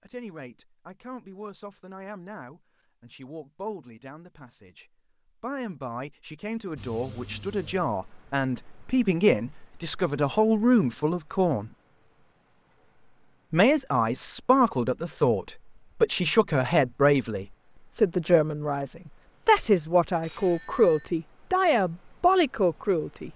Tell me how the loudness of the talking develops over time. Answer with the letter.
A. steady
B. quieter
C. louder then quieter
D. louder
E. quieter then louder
D.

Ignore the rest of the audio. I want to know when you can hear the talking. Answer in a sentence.
The talking can be heard from 0.0 to 11.7 s and from 13.5 to 23.3 s.